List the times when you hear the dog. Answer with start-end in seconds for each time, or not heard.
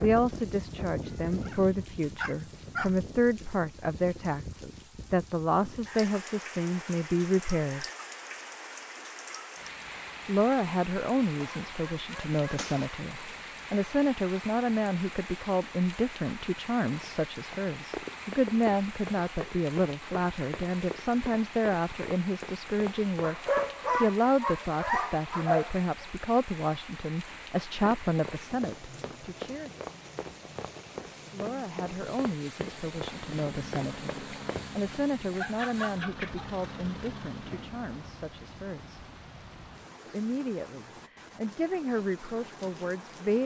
1.2-3.0, 11.4-13.1, 23.2-25.9, 35.3-36.5.